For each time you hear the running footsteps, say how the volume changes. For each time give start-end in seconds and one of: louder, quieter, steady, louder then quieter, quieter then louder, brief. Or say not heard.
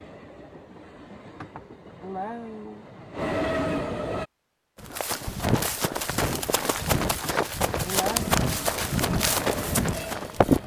4.8-10.6 steady.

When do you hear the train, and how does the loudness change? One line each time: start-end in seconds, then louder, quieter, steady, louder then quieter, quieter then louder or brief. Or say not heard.
0.0-4.2 louder
8.1-10.6 brief.